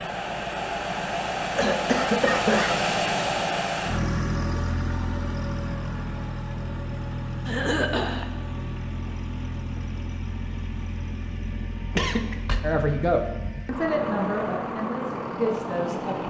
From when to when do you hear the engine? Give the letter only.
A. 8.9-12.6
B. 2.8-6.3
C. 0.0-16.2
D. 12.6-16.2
C.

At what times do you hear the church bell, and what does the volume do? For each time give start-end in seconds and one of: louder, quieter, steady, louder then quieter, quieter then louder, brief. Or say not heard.
not heard.